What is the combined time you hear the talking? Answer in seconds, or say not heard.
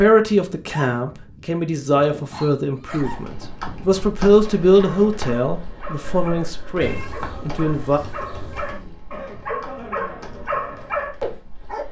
8 s.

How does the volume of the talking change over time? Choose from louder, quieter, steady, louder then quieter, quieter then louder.
louder then quieter.